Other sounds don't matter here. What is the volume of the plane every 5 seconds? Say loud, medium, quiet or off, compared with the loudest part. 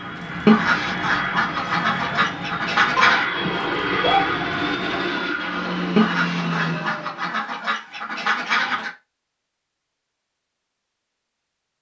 loud, loud, off.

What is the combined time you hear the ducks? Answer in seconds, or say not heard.
6 s.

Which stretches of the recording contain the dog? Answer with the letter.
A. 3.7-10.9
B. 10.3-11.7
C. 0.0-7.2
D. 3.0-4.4
D.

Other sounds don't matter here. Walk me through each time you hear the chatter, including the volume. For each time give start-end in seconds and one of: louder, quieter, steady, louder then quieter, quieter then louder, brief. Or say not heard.
not heard.